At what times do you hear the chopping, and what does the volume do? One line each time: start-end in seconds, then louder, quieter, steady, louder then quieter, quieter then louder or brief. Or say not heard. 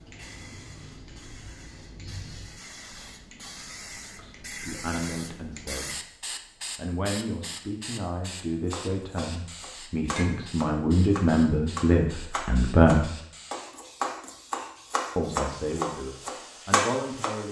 8.7-17.3 louder.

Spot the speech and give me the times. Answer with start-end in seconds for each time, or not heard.
4.2-6.0, 6.8-13.1, 15.2-17.4.